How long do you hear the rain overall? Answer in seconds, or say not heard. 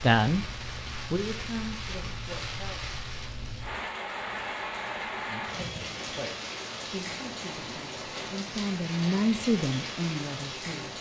11 s.